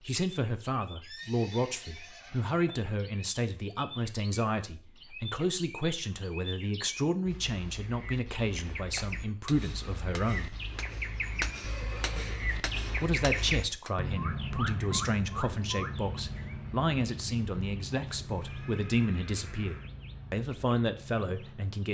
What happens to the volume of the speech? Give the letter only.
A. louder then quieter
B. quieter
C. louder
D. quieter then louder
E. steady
E.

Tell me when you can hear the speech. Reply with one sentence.
You can hear the speech from 0.0 to 10.6 s and from 12.9 to 21.9 s.